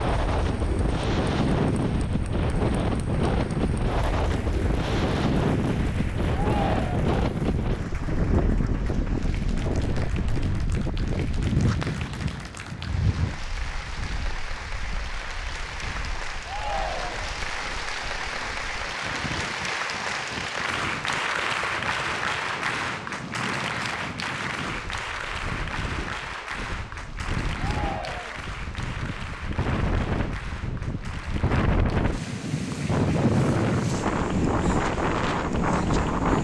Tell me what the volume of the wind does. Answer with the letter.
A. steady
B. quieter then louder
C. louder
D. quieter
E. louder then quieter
B.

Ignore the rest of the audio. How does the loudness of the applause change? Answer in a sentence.
The loudness of the applause goes up, then down.